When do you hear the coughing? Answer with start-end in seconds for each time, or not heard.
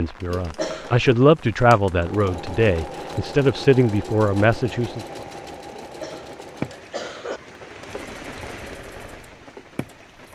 0.4-1.0, 5.7-7.4.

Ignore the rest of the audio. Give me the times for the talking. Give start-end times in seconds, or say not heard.
0.0-5.0.